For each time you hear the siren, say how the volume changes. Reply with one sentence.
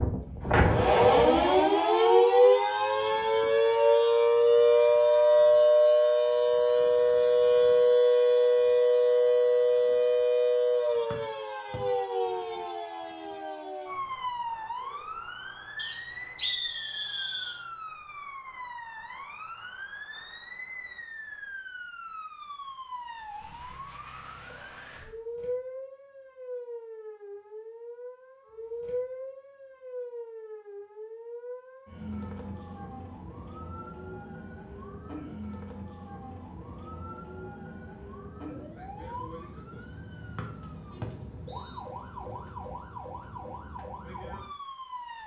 You can hear the siren from 0.0 to 45.2 s, getting quieter.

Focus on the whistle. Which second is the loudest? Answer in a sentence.
The loudest moment of the whistle is at 17 seconds.